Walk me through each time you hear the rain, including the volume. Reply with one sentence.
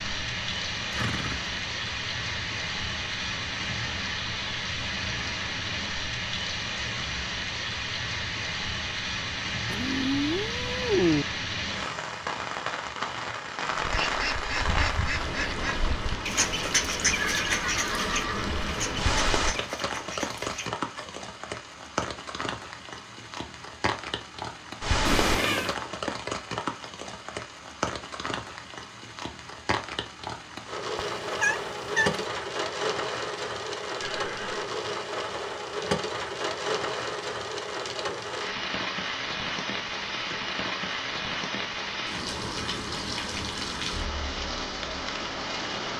You can hear the rain from 0.0 to 45.9 s, at a steady volume.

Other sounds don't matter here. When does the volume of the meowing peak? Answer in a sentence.
The volume of the meowing peaks at 11 seconds.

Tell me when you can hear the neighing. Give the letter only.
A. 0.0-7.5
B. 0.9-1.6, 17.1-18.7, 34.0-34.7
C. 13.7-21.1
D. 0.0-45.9
B.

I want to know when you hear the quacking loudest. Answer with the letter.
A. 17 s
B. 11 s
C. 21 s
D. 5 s
A.